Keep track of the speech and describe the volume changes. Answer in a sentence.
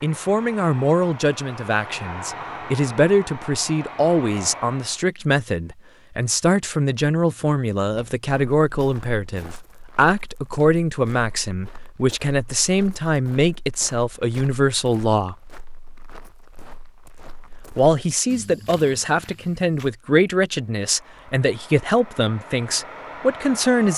The volume of the speech stays about the same.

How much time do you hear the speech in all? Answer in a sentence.
You can hear the speech for 22 seconds altogether.